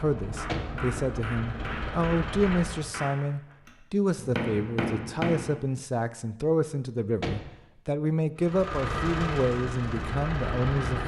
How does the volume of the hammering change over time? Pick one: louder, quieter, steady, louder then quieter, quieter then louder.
quieter then louder.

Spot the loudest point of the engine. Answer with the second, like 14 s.
9 s.